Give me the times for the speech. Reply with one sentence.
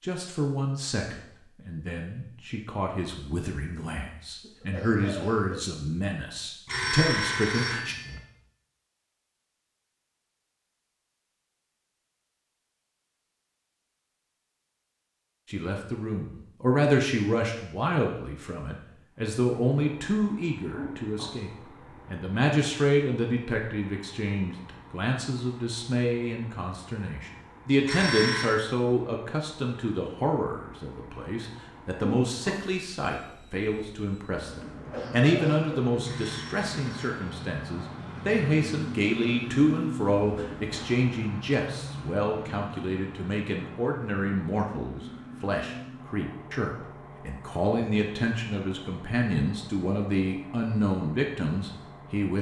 You can hear the speech from 0.0 to 8.0 s and from 15.4 to 52.3 s.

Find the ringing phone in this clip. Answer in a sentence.
The ringing phone can be heard from 6.7 to 8.2 s, from 27.9 to 28.6 s and from 36.0 to 37.4 s.